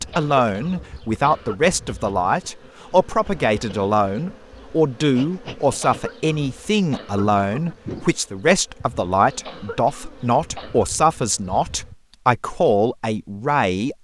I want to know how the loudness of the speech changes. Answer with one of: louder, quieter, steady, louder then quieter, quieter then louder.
steady.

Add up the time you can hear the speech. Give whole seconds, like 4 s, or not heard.
14 s.